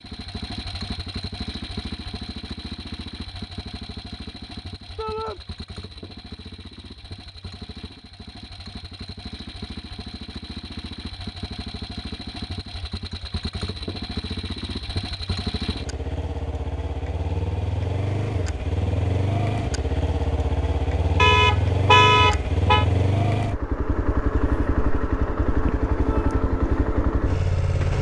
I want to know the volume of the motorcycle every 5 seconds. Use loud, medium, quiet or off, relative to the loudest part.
medium, quiet, medium, loud, loud, loud.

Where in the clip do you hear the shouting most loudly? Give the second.
5 s.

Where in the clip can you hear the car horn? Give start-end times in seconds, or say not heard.
21.1-22.9.